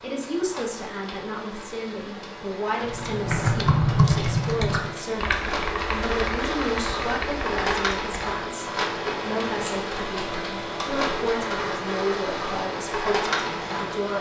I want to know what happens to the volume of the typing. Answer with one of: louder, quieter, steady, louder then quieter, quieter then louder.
quieter.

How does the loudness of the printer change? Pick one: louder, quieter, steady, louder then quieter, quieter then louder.
louder.